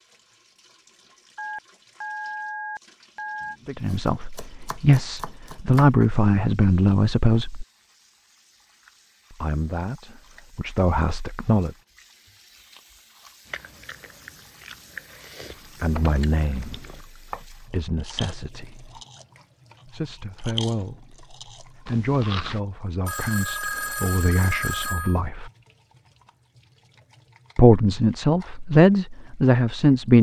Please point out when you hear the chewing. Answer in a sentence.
The chewing can be heard from 13.4 to 19.2 s and from 20.4 to 22.6 s.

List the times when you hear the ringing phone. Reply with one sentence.
You can hear the ringing phone from 1.4 to 3.5 s and from 23.1 to 25.2 s.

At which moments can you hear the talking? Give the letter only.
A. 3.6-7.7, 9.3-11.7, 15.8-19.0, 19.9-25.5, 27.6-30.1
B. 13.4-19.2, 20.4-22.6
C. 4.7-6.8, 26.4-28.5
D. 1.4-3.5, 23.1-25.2
A.